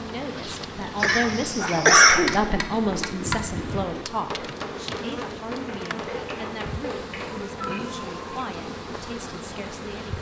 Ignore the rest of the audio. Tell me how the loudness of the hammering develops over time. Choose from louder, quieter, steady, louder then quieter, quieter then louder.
quieter.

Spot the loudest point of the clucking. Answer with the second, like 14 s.
2 s.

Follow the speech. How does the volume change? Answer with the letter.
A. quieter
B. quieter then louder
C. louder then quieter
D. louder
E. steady
A.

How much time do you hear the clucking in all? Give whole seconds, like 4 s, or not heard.
4 s.